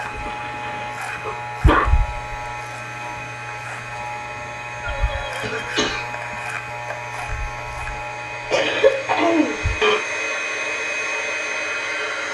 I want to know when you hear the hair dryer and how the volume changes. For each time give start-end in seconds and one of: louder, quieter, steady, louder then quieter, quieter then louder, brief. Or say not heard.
0.0-12.3 louder.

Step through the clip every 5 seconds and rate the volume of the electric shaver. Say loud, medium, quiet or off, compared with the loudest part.
loud, loud, off.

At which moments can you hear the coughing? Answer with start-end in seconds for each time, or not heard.
0.1-1.9, 4.8-6.1, 8.5-10.0.